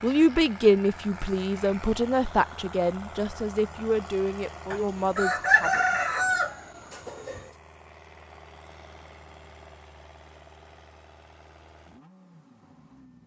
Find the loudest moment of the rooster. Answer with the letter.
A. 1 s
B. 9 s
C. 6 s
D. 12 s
C.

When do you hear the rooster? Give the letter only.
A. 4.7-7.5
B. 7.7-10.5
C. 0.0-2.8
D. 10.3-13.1
A.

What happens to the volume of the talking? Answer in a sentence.
The volume of the talking goes down.